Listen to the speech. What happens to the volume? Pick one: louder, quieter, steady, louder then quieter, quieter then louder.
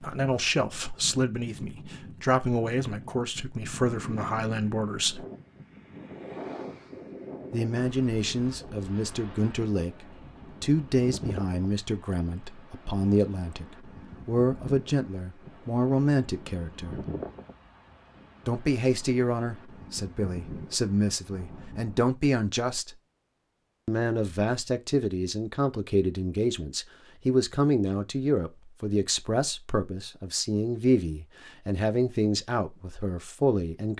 steady.